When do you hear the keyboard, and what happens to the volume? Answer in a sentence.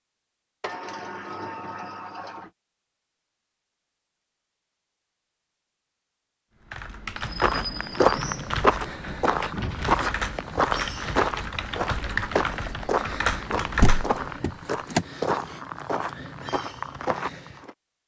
The keyboard can be heard from 6.6 to 14.2 s, getting louder.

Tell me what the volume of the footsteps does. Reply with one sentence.
The loudness of the footsteps goes down.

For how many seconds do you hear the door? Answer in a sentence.
The door can be heard for 4 seconds in total.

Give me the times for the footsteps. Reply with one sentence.
The footsteps can be heard from 7.3 to 17.8 s.